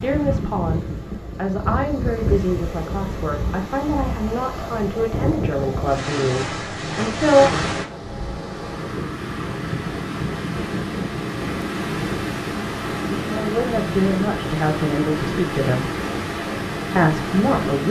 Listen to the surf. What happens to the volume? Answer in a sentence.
The loudness of the surf stays about the same.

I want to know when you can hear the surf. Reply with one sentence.
You can hear the surf from 0.0 to 17.8 s.